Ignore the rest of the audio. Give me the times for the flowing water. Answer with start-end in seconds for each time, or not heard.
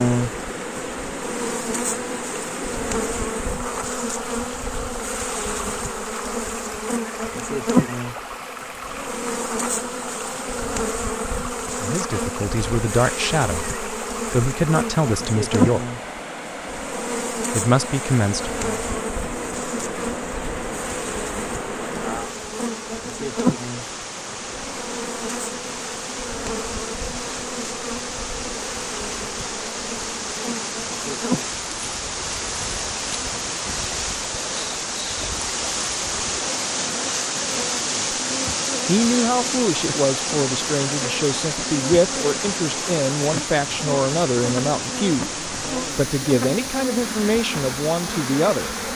0.0-48.8.